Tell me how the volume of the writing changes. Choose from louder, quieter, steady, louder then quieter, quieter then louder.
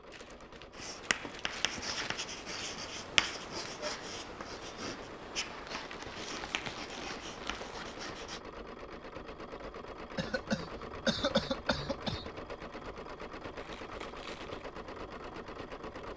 louder then quieter.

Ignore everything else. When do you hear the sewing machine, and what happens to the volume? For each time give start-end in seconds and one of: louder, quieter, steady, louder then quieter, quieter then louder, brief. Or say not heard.
0.0-16.1 louder.